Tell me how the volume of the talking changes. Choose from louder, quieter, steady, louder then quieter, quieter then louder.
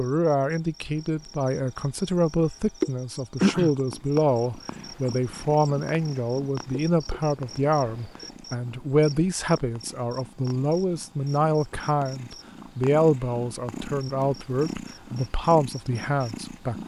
steady.